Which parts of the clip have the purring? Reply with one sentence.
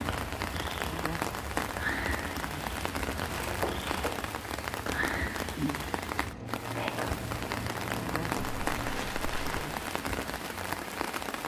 The purring can be heard from 0.0 to 9.2 s.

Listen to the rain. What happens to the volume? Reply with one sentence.
The volume of the rain stays about the same.